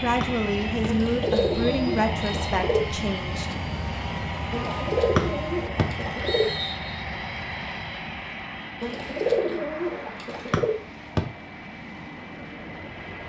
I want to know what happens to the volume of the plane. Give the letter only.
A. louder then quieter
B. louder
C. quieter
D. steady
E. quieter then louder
C.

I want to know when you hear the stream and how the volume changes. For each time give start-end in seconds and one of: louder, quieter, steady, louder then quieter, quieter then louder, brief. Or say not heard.
not heard.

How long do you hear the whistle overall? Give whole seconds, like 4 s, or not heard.
5 s.